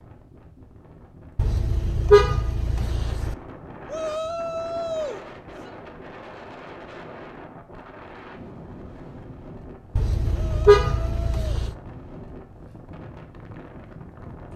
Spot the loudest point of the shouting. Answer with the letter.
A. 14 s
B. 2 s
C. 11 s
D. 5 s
D.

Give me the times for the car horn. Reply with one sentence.
You can hear the car horn from 1.4 to 3.4 s and from 9.9 to 11.7 s.